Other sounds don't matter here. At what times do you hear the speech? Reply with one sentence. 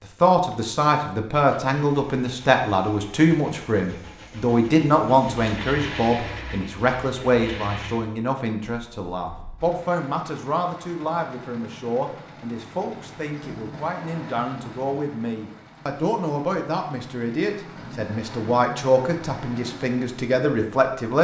You can hear the speech from 0.0 to 21.1 s.